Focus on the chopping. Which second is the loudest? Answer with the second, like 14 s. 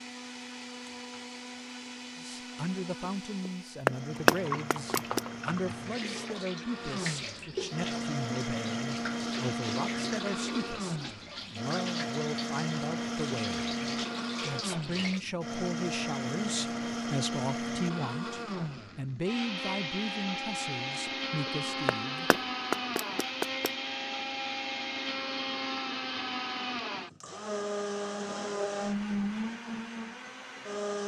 4 s.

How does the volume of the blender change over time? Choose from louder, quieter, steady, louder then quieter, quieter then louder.
louder.